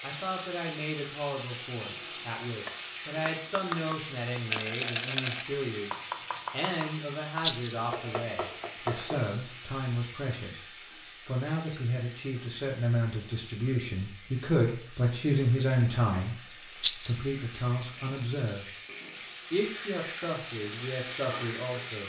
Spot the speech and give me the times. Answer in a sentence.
The speech can be heard from 0.0 to 18.8 s and from 19.5 to 22.0 s.